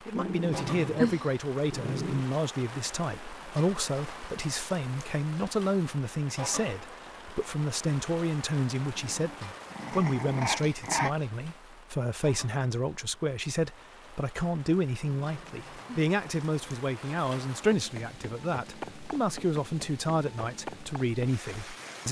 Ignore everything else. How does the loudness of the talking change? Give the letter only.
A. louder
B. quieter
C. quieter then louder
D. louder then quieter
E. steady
E.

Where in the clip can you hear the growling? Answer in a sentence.
The growling can be heard from 0.1 to 2.2 s, from 8.8 to 11.2 s and from 15.2 to 16.8 s.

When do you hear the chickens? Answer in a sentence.
You can't hear the chickens here.